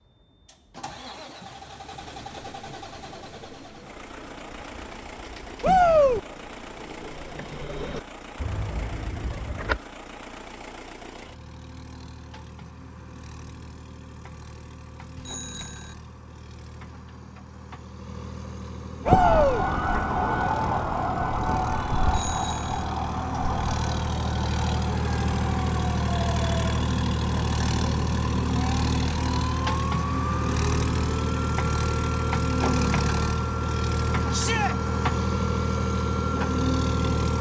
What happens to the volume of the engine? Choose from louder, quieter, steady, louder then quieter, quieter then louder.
louder.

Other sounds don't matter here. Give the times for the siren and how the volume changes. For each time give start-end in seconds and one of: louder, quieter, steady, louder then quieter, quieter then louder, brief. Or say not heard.
19.1-37.3 quieter.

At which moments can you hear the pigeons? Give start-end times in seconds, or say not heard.
1.9-9.8.